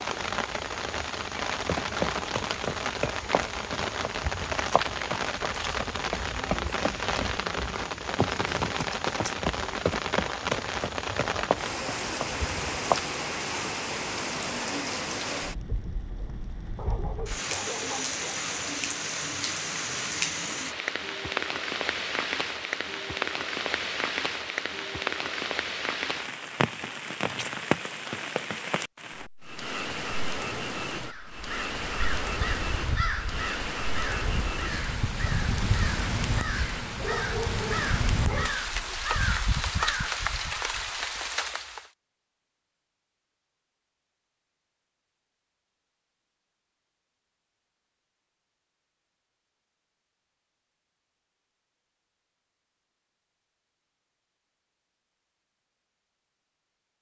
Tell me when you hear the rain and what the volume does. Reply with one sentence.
You can hear the rain from 0.0 to 41.9 s, at a steady volume.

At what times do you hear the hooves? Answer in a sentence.
You can hear the hooves from 1.6 to 13.1 s.